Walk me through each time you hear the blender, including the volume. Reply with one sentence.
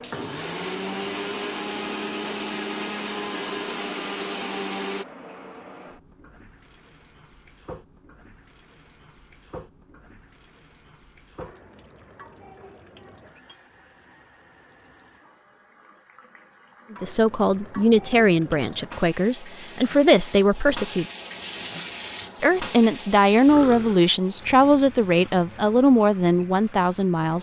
You can hear the blender from 0.0 to 5.0 s, at a steady volume.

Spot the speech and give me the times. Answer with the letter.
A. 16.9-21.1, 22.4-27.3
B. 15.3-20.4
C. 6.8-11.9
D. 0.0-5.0
A.